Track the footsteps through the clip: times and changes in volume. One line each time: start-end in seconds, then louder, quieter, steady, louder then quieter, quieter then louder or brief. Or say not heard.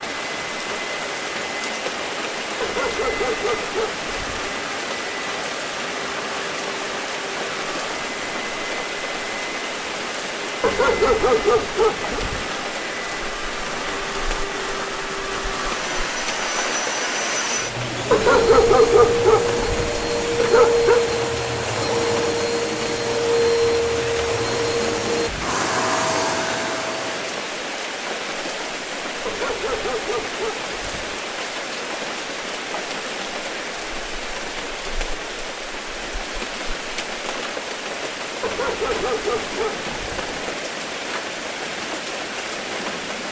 not heard.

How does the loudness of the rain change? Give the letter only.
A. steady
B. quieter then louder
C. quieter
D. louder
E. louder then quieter
A.